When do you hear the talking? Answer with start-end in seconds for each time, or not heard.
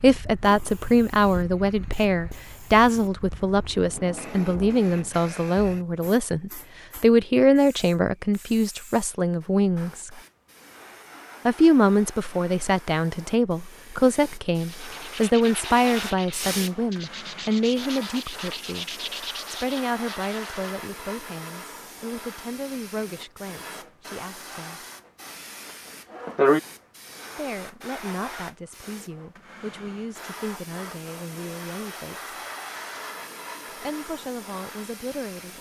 0.0-10.1, 11.4-24.9, 27.4-32.4, 33.8-35.5.